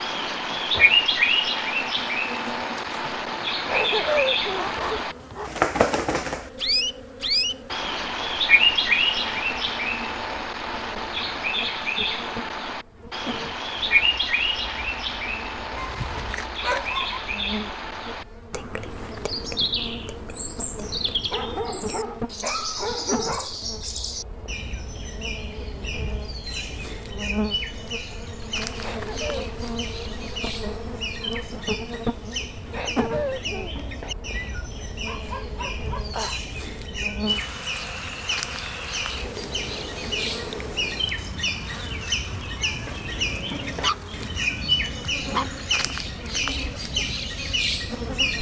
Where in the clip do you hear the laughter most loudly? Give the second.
4 s.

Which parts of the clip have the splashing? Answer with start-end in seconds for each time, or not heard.
not heard.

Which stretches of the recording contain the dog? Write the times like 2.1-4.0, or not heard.
3.6-5.5, 15.8-17.2, 20.8-23.6, 34.3-36.5, 43.2-45.5.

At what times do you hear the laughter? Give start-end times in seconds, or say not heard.
3.6-4.8, 28.8-29.5, 32.7-33.8.